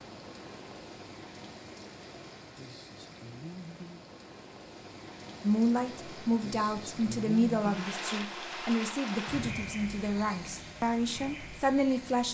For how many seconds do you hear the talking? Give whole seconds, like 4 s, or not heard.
7 s.